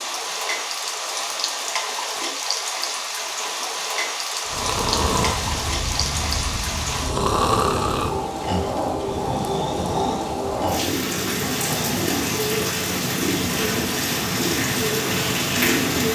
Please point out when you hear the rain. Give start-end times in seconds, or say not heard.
0.0-16.1.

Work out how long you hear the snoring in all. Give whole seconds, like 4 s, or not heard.
8 s.